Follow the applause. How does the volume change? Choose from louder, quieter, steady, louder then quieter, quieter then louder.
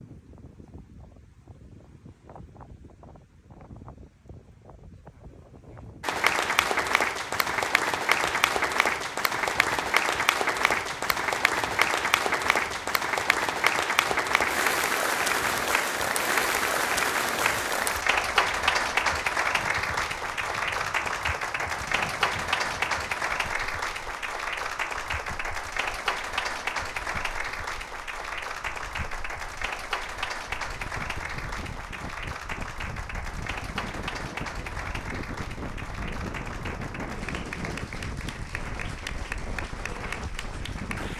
quieter.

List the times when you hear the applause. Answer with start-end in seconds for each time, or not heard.
6.0-41.1.